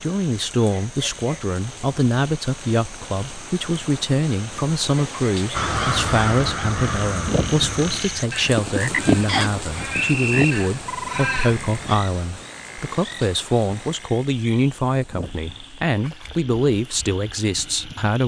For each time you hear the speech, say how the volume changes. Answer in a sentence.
The speech can be heard from 0.0 to 18.2 s, at a steady volume.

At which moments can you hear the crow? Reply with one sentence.
You can hear the crow from 5.5 to 11.9 s.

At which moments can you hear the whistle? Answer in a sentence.
The whistle can be heard from 9.2 to 10.6 s.